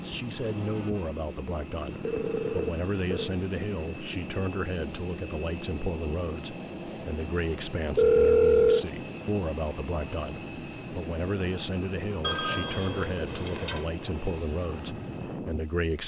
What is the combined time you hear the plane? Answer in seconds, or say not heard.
16 s.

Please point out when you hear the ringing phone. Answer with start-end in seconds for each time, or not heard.
2.0-3.4, 8.0-8.8, 12.2-13.8.